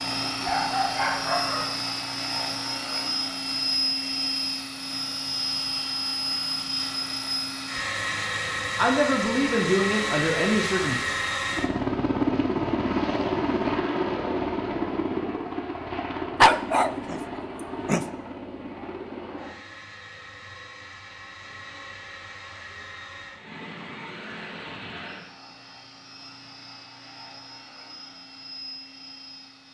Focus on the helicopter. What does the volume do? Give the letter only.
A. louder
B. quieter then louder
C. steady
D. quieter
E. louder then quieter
D.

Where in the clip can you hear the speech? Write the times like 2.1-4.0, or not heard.
8.8-11.0.